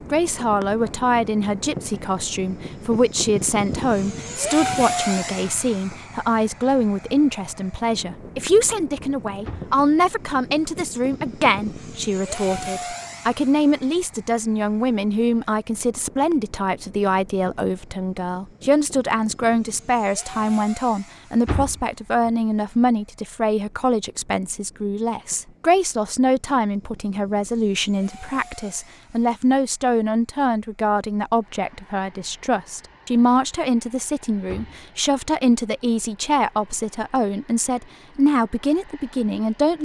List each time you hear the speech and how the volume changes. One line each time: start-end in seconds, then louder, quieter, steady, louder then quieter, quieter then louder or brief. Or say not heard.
0.1-39.8 steady.